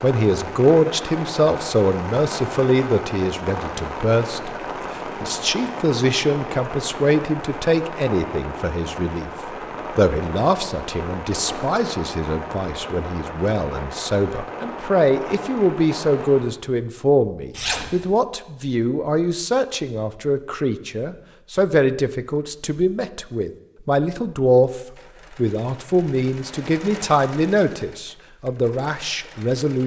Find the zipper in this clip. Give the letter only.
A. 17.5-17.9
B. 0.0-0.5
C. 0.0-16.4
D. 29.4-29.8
A.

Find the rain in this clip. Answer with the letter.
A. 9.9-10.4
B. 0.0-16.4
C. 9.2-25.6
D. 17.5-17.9
B.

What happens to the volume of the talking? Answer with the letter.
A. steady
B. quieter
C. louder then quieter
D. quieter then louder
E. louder
A.